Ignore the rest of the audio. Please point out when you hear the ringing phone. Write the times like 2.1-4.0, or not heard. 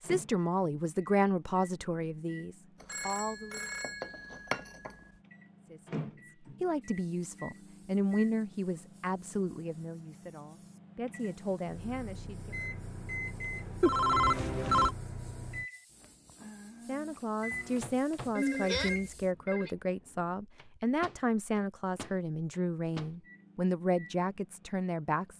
2.8-5.0, 13.8-14.9, 18.4-19.7.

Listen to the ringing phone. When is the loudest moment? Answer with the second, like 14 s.
14 s.